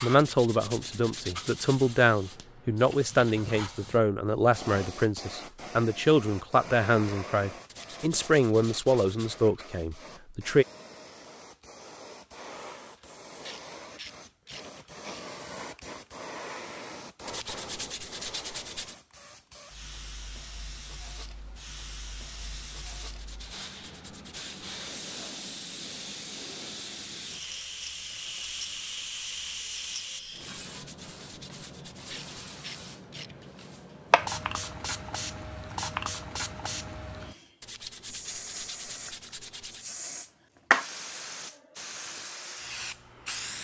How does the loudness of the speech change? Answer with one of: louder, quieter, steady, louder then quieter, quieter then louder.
steady.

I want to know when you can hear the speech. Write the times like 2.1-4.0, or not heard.
0.0-10.7.